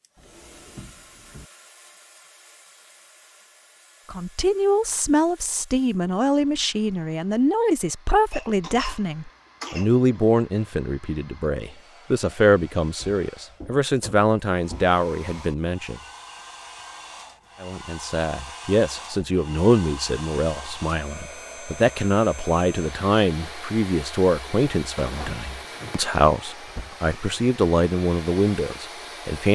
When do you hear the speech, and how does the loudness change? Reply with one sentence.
The speech can be heard from 4.1 to 16.0 s, at a steady volume; and from 17.6 to 29.4 s, at a steady volume.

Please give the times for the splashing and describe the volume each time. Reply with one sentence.
You can't hear the splashing here.